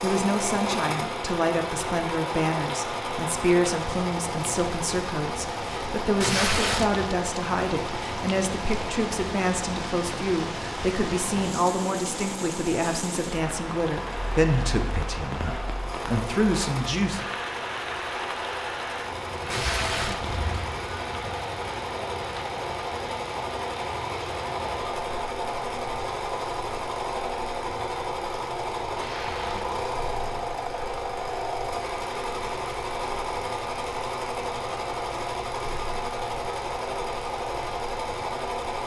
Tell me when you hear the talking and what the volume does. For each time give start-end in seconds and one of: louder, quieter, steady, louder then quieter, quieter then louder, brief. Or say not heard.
0.0-17.2 steady.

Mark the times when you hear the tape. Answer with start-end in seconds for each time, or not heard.
6.2-7.2, 19.5-20.4, 28.9-29.9.